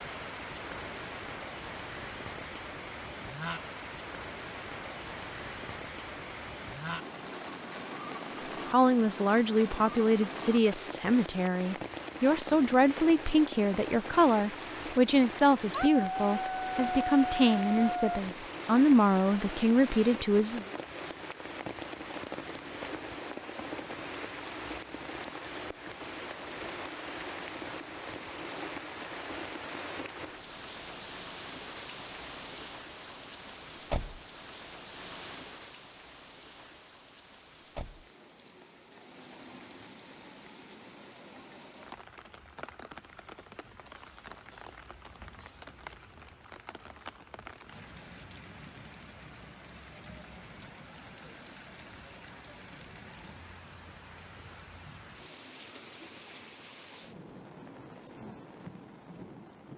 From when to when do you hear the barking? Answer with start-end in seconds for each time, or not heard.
15.7-18.2.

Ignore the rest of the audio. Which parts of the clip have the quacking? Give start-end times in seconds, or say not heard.
not heard.